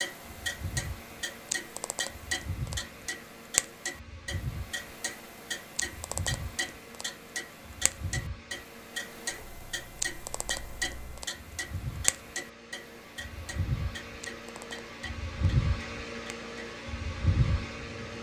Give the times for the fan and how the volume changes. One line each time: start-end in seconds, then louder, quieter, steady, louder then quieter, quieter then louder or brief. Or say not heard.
0.1-18.1 louder.